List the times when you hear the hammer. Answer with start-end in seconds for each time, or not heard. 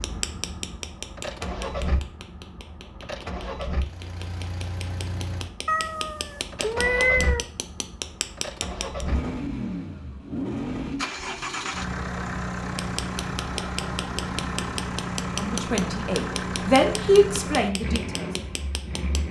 0.0-9.1, 12.8-19.2.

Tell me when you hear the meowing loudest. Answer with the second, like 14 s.
7 s.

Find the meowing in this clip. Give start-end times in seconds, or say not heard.
5.7-7.5.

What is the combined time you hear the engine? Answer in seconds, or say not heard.
19 s.